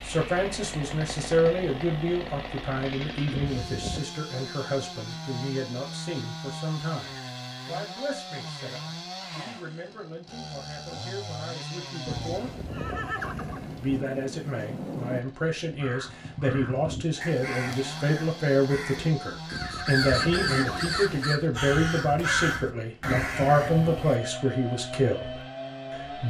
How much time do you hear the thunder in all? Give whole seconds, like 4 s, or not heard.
3 s.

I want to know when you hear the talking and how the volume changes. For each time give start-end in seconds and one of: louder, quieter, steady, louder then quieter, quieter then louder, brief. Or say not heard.
0.0-12.5 quieter
13.8-26.2 louder.